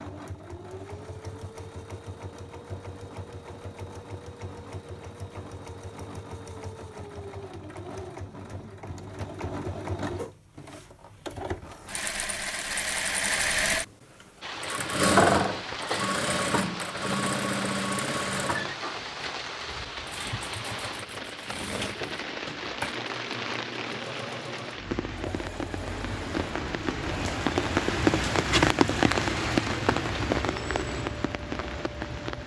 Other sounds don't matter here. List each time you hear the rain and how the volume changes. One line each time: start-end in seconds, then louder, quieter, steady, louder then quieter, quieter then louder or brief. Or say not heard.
14.4-32.4 louder.